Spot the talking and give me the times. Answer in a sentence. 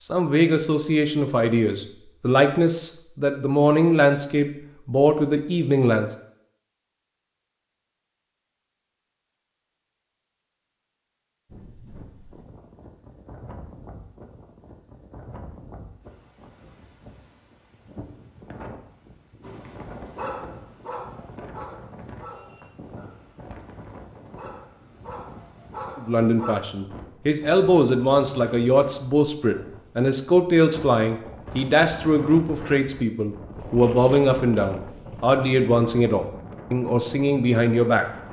The talking can be heard from 0.0 to 6.2 s and from 25.9 to 38.0 s.